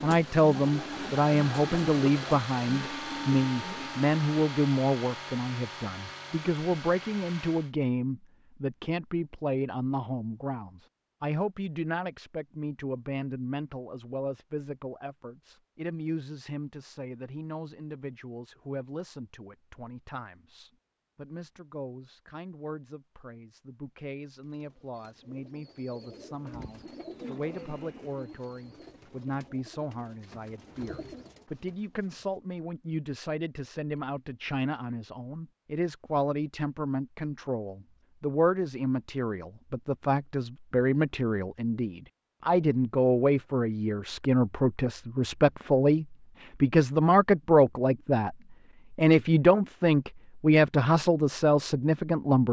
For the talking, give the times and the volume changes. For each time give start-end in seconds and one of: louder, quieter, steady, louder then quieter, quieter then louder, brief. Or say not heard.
0.0-52.4 quieter then louder.